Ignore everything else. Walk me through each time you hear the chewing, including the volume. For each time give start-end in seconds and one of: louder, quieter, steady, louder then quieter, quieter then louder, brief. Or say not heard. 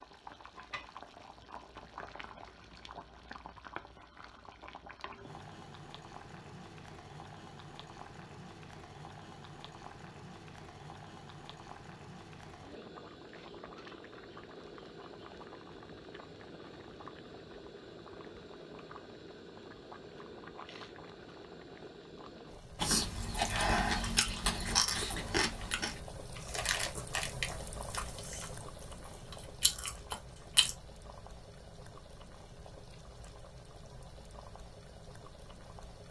22.8-30.8 quieter then louder.